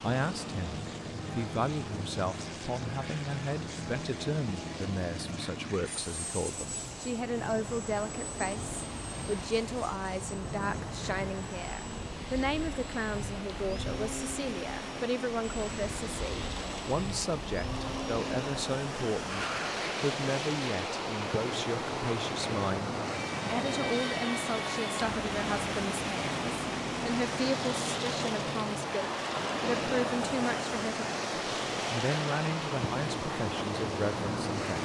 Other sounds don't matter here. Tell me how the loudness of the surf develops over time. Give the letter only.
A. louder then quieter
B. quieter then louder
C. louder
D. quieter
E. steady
C.